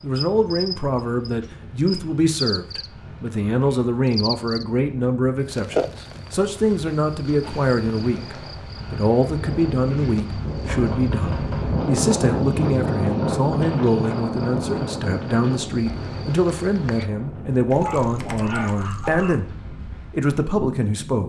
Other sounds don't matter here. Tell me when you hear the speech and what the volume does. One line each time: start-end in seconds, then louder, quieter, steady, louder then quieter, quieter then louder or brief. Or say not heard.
0.0-21.2 steady.